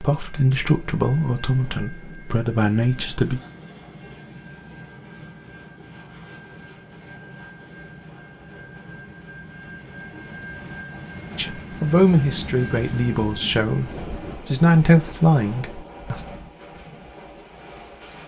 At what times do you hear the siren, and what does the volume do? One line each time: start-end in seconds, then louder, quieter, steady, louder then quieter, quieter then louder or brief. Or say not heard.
not heard.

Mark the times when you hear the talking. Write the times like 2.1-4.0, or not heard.
0.0-3.4, 11.3-16.2.